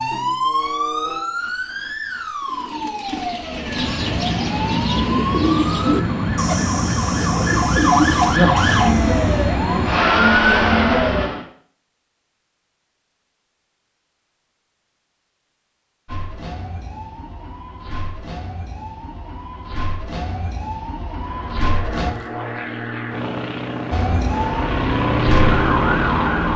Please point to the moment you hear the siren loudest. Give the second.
8 s.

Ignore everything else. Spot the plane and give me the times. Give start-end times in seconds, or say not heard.
3.5-11.4, 21.2-26.5.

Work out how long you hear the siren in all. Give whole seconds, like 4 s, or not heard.
20 s.